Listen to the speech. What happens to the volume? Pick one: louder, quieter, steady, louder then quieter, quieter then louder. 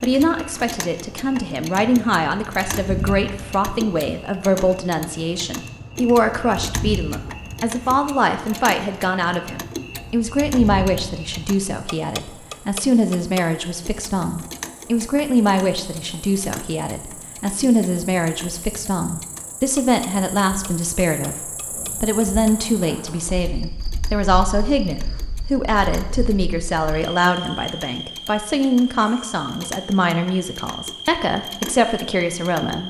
steady.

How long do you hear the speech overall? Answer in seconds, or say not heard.
33 s.